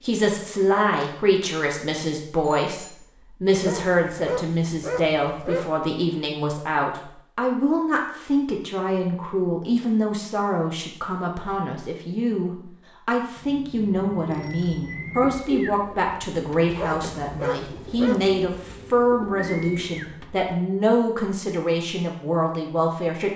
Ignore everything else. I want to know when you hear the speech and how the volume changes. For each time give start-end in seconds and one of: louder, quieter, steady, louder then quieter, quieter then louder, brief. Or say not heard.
0.0-23.3 steady.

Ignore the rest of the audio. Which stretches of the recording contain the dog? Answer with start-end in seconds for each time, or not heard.
3.5-5.7, 16.7-18.4.